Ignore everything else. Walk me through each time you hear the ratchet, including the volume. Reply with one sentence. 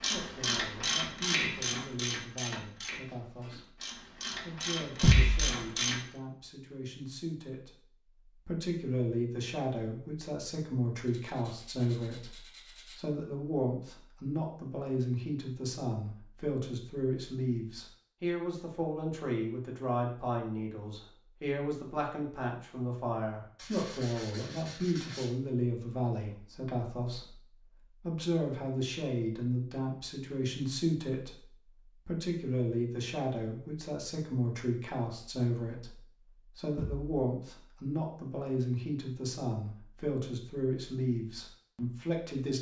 You can hear the ratchet from 0.0 to 6.0 s, getting quieter then louder.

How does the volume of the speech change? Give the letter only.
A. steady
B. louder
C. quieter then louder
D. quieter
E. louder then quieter
B.